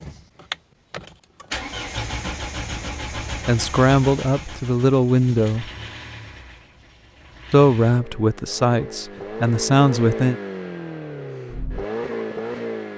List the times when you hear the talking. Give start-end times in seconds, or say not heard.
3.5-5.7, 7.5-10.3.